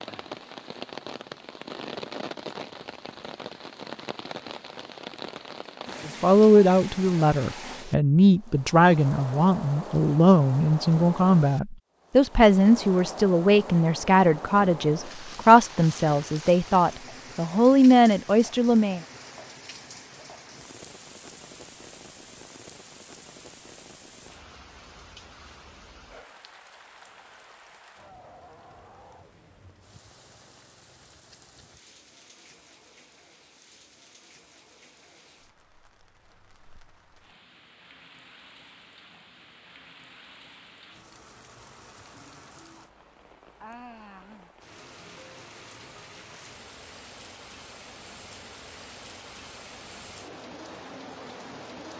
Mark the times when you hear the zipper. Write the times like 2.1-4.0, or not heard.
not heard.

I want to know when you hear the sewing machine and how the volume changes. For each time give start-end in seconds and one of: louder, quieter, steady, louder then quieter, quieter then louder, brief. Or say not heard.
not heard.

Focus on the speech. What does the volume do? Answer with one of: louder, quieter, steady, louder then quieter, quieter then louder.
steady.